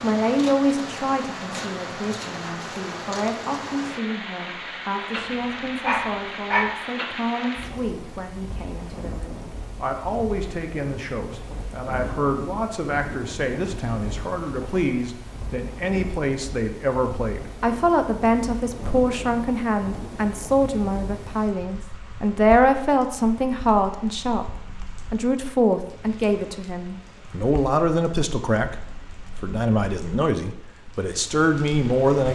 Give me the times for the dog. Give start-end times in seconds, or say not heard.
5.2-6.7.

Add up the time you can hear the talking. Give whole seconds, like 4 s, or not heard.
32 s.